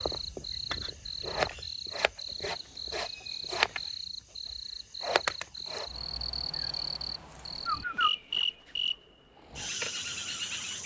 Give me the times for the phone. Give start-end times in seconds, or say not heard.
not heard.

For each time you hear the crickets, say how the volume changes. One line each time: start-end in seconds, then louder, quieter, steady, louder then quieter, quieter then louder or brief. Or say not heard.
0.0-10.8 steady.